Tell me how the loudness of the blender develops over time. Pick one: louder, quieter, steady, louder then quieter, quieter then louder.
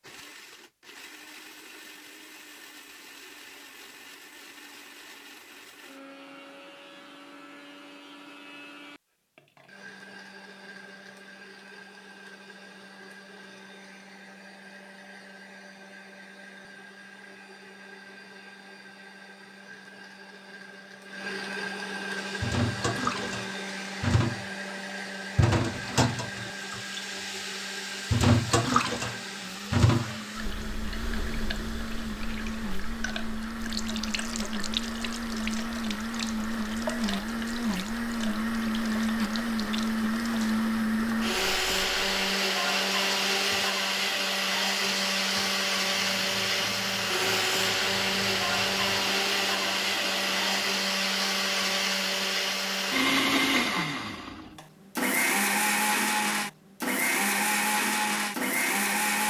louder.